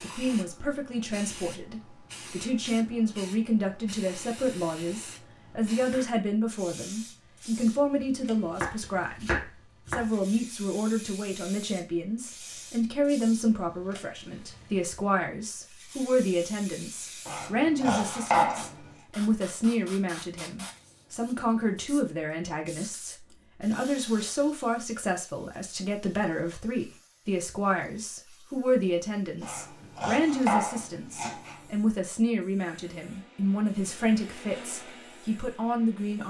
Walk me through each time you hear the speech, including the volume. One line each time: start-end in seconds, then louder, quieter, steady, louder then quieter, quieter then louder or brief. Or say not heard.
0.0-36.2 steady.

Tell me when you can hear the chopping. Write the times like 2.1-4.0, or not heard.
7.5-10.1, 17.2-18.8, 29.4-31.6.